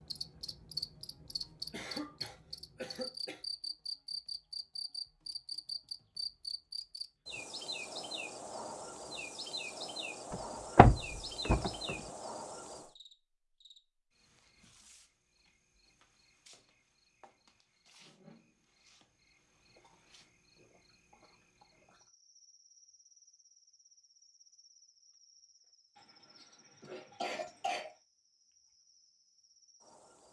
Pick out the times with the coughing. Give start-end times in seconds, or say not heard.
1.7-3.5, 25.9-27.9.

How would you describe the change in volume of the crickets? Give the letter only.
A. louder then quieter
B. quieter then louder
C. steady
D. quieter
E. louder
D.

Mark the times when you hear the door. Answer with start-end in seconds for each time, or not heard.
10.3-11.9.